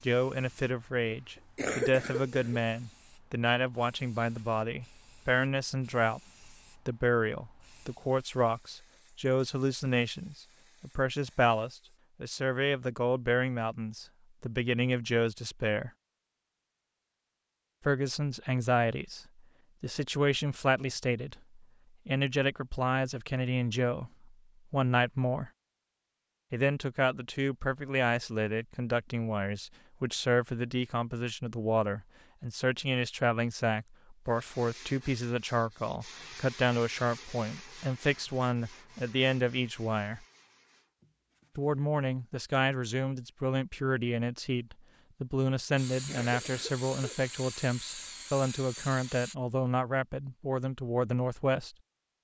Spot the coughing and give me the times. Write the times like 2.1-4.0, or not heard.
1.4-2.6, 46.0-47.2.